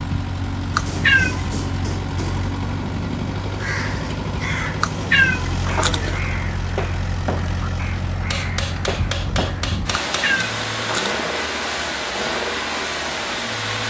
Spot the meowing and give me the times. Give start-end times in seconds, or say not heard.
0.8-1.6, 4.8-6.2, 9.9-11.3.